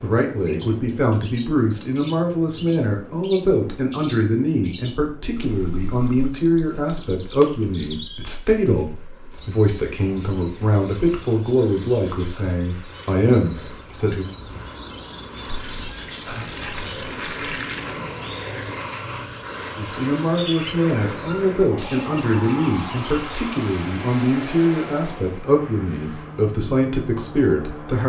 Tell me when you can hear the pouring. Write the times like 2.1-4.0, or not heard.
5.3-6.3, 15.4-18.0.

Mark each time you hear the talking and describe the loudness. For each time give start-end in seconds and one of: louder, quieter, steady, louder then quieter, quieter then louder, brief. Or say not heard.
0.0-14.2 steady
19.8-28.0 steady.